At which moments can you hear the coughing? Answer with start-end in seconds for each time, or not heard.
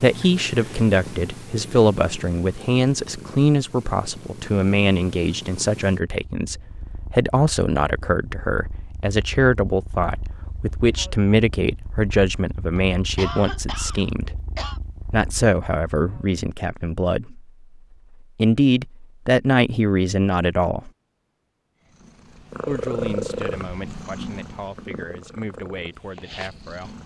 12.8-14.8.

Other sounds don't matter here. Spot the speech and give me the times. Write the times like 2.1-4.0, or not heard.
0.0-14.4, 15.1-17.4, 18.4-20.9, 22.6-26.9.